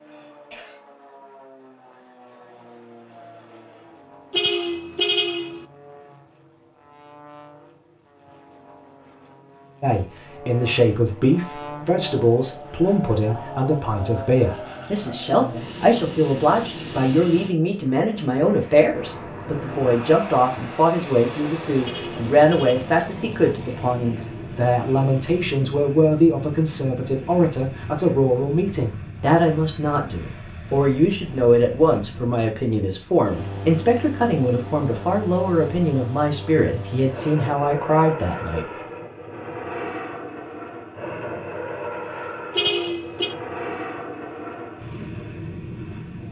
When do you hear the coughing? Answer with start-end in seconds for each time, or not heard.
0.1-0.8.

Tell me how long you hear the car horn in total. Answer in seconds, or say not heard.
3 s.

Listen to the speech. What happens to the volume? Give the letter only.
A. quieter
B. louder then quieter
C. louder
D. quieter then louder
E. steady
E.